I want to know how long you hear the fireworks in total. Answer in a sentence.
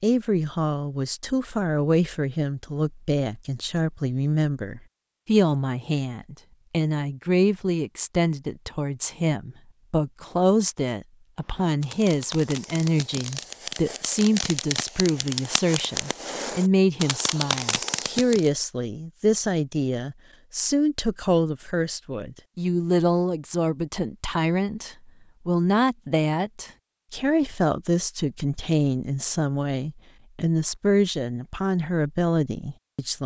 The fireworks can be heard for 7 seconds in total.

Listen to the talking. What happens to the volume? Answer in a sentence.
The volume of the talking stays about the same.